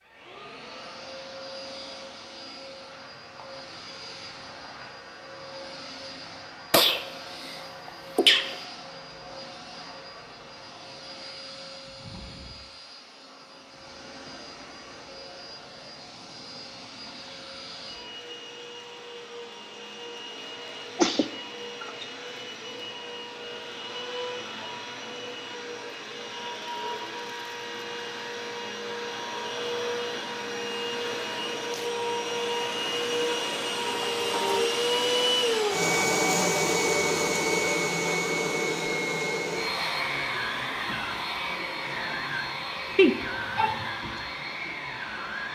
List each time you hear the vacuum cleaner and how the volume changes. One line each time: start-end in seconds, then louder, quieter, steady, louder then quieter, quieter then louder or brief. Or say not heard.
0.0-45.5 louder.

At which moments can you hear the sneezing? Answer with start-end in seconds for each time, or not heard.
6.7-8.6, 20.9-22.1, 43.0-43.9.